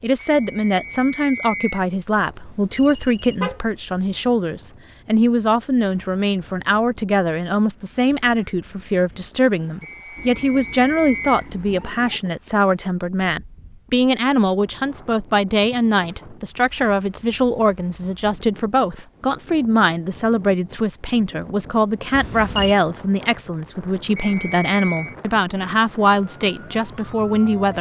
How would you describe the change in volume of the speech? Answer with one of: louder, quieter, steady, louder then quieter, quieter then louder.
steady.